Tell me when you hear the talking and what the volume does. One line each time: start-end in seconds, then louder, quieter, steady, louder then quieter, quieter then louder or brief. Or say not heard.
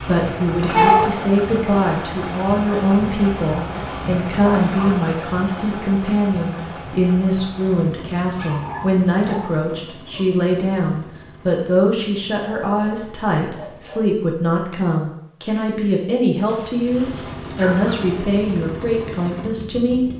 0.0-20.1 steady.